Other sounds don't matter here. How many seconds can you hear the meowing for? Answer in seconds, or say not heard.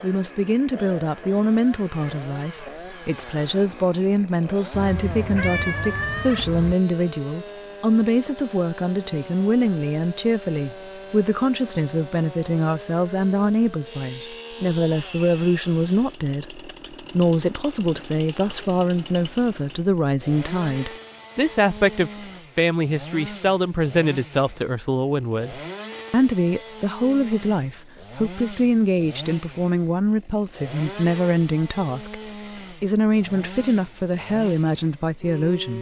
2 s.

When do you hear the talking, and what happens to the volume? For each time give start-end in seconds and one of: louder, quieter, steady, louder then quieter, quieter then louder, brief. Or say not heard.
0.0-35.7 steady.